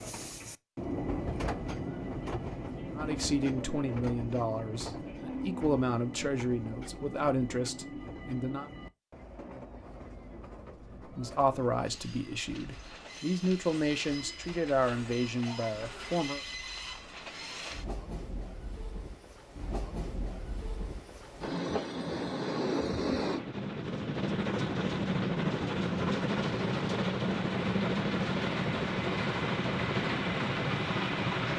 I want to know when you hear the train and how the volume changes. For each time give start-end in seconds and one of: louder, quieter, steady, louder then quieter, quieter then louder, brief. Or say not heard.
0.0-31.5 quieter then louder.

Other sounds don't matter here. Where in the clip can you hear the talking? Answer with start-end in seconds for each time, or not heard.
3.0-8.7, 11.0-16.4.